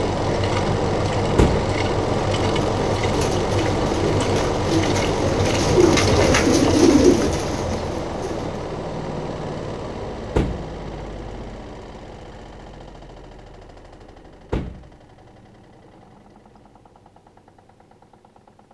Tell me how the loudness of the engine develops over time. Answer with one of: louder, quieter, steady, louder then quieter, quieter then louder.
quieter.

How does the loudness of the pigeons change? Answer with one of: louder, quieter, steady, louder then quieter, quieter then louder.
louder then quieter.